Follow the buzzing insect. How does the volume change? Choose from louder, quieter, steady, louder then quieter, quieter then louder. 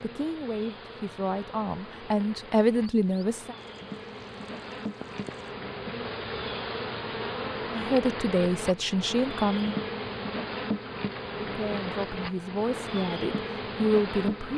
louder.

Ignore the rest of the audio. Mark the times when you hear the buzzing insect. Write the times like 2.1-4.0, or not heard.
0.0-14.5.